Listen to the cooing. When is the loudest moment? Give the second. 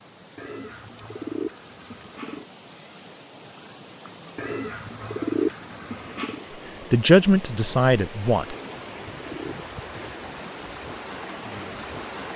5 s.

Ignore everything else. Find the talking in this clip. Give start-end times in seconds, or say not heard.
6.9-8.6.